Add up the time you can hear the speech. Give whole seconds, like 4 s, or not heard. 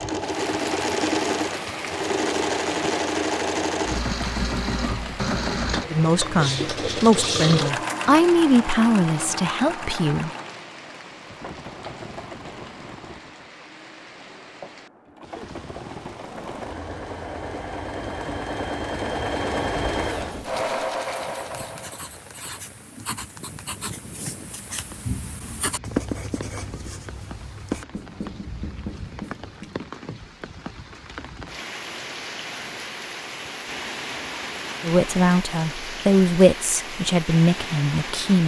8 s.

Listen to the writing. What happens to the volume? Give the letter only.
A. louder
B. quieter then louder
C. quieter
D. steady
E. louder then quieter
E.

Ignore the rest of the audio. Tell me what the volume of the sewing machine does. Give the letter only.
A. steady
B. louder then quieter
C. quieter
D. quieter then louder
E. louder
D.